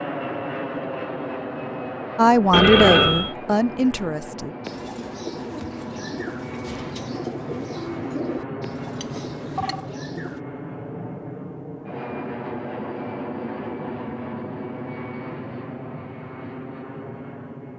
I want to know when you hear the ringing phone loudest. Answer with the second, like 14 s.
3 s.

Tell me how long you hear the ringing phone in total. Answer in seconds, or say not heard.
2 s.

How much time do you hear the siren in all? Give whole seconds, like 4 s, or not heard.
not heard.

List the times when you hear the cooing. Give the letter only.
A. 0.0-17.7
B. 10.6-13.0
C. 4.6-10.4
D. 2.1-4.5
C.